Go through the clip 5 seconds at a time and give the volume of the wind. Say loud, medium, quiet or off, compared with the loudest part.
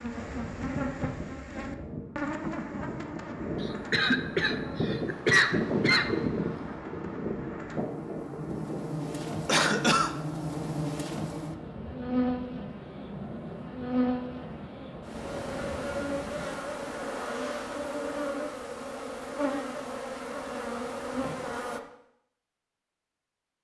medium, loud, medium, medium, off.